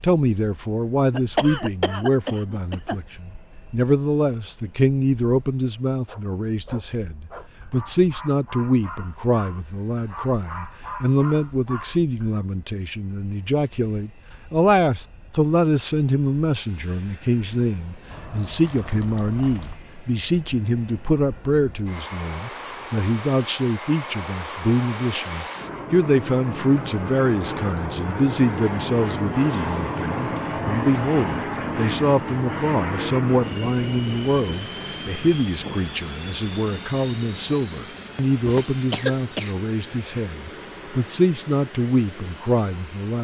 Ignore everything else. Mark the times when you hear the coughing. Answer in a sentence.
You can hear the coughing from 1.1 to 3.0 s and from 38.5 to 40.2 s.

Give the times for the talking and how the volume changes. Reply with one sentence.
The talking can be heard from 0.0 to 43.1 s, at a steady volume.